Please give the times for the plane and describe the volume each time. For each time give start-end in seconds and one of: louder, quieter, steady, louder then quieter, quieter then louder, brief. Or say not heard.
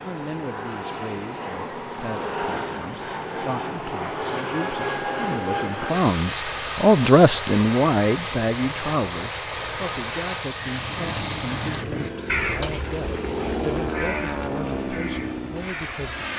0.0-16.3 steady.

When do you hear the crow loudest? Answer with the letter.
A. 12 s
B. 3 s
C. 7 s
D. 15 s
A.